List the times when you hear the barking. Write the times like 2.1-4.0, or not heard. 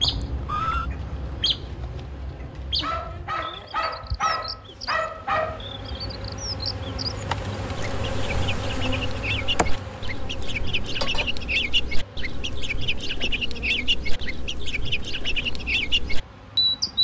2.8-5.6.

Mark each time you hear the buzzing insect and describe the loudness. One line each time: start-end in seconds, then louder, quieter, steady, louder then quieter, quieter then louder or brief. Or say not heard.
0.0-16.9 louder then quieter.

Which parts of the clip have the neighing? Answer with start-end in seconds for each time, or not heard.
0.0-0.9.